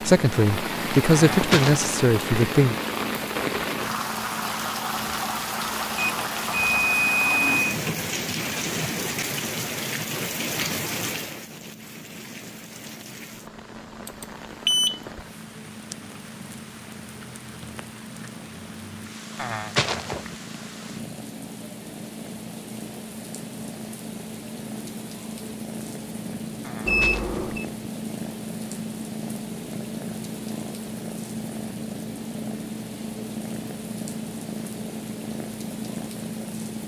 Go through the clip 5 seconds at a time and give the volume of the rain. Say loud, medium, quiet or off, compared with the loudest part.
loud, loud, medium, quiet, quiet, quiet, quiet, quiet.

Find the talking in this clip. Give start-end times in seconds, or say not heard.
0.0-2.8.